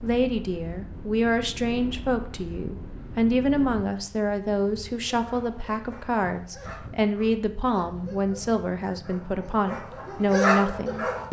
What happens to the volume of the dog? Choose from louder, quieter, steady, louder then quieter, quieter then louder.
louder.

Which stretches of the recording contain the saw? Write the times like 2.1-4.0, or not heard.
not heard.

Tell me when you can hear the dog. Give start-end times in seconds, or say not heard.
5.2-11.2.